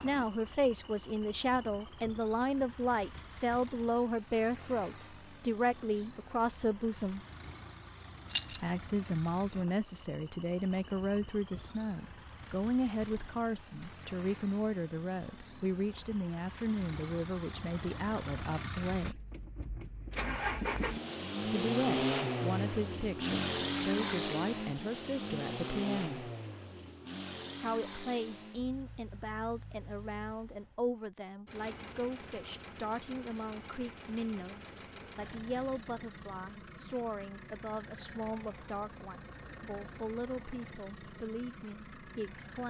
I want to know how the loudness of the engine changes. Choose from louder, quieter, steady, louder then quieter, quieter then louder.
louder then quieter.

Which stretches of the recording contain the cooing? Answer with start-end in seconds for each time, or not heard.
not heard.